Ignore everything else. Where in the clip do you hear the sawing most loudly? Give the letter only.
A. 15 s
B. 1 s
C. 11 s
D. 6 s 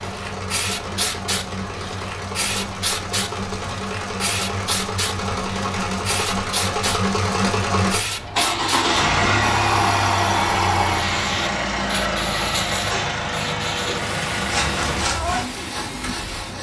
A.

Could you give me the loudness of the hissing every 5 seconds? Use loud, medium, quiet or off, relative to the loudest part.
loud, loud, loud, medium.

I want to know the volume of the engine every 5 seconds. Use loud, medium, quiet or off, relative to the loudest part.
medium, loud, loud, quiet.